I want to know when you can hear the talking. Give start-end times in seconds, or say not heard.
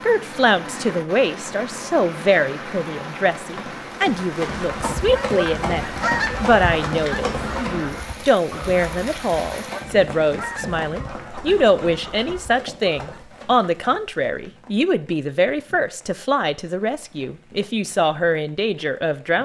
0.0-19.4.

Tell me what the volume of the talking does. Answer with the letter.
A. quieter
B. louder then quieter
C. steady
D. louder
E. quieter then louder
C.